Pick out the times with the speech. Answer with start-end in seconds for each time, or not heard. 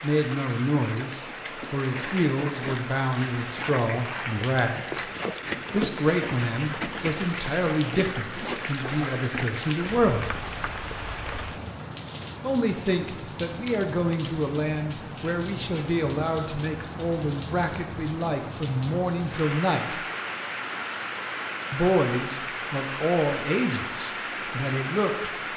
0.0-5.0, 5.7-10.3, 12.4-20.0, 21.7-25.4.